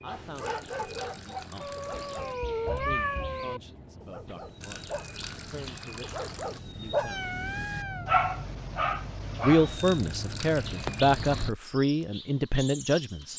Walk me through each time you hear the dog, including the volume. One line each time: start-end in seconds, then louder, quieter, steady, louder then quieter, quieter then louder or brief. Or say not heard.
0.1-9.8 quieter then louder.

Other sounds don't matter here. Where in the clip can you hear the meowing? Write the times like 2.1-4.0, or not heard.
1.6-3.6, 7.0-8.1.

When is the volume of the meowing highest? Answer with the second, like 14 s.
3 s.